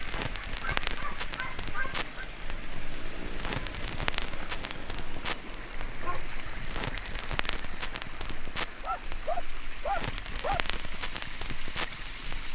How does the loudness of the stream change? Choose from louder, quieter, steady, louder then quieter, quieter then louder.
steady.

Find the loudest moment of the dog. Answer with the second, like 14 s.
10 s.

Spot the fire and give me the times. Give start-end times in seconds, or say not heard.
0.0-12.5.